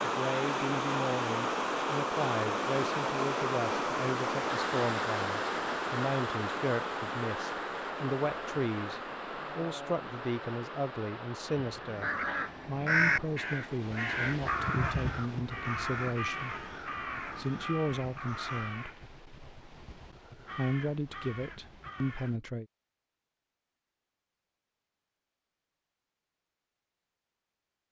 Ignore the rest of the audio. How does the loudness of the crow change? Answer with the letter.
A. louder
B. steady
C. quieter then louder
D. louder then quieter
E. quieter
E.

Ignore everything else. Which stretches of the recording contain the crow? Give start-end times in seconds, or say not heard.
11.5-22.4.